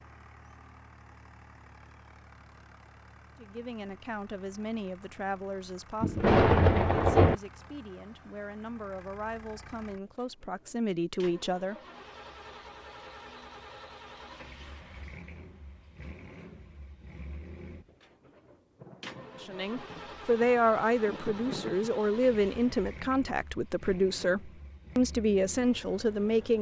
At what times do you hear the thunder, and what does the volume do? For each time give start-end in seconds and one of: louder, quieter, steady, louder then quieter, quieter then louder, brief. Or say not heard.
6.0-7.3 brief
18.8-22.9 louder then quieter.